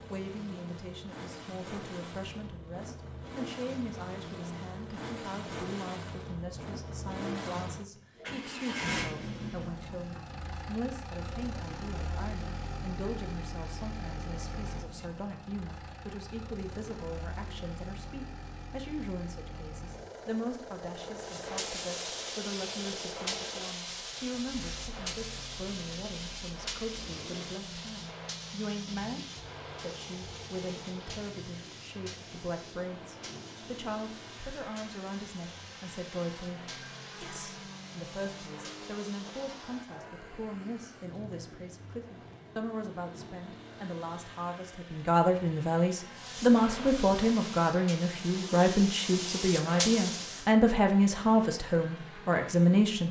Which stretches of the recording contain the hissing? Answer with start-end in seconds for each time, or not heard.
21.2-40.0, 46.1-50.5.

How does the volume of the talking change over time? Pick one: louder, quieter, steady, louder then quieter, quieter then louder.
louder.